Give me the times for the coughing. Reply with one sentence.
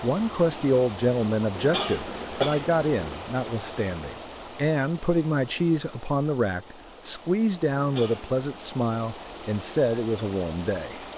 You can hear the coughing from 1.6 to 3.1 s and from 7.8 to 8.4 s.